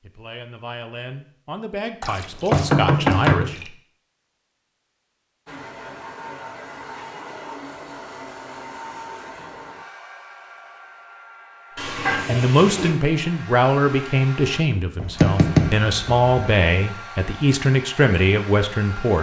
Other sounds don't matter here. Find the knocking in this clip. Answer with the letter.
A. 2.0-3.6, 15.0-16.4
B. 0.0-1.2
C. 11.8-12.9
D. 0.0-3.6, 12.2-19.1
A.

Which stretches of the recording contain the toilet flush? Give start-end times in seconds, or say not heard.
11.8-12.9.